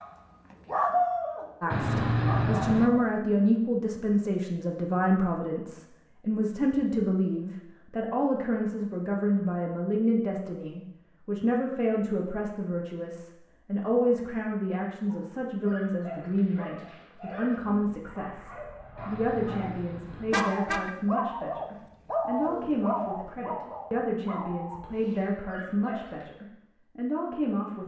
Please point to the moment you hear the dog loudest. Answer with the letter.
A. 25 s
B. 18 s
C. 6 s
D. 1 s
D.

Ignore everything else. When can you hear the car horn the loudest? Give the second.
2 s.